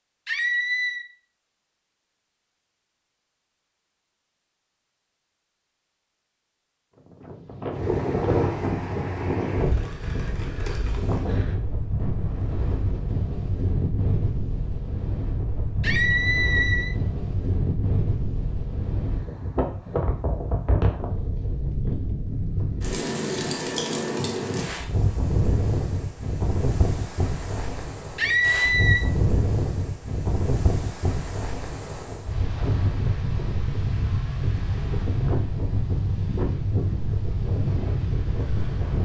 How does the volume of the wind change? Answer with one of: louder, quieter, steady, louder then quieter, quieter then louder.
steady.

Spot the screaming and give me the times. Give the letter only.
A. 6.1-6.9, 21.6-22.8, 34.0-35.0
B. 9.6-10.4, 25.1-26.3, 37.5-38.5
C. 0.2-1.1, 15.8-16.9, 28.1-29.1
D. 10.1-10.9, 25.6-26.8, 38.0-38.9
C.